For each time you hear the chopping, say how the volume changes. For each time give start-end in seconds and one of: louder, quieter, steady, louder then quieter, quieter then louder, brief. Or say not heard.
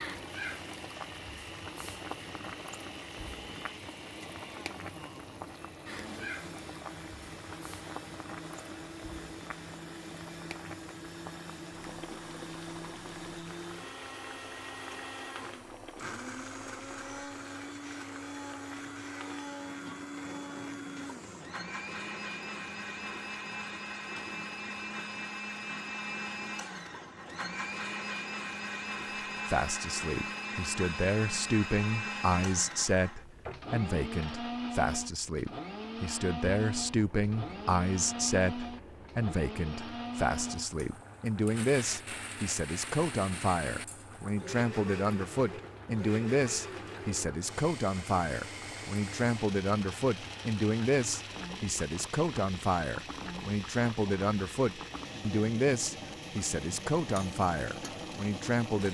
not heard.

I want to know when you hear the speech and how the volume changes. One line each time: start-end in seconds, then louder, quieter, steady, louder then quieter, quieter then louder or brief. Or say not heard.
29.4-58.8 steady.